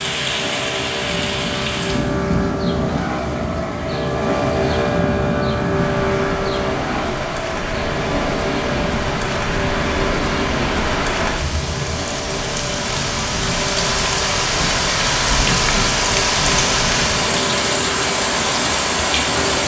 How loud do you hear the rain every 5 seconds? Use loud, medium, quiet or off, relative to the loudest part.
medium, medium, loud, loud.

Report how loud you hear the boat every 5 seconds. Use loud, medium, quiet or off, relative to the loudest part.
loud, loud, medium, medium.